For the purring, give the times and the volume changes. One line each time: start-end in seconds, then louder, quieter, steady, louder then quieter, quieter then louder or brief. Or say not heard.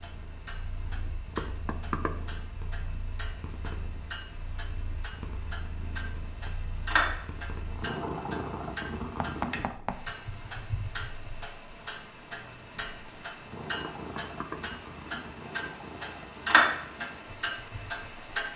0.0-18.3 louder then quieter.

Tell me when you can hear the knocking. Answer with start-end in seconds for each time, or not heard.
1.4-2.1, 9.2-10.0, 13.8-14.6.